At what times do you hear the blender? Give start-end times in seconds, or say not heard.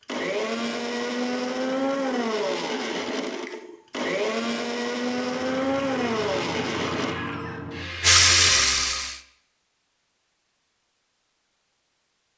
0.0-7.2.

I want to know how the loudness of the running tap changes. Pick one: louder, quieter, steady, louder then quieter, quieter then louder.
louder.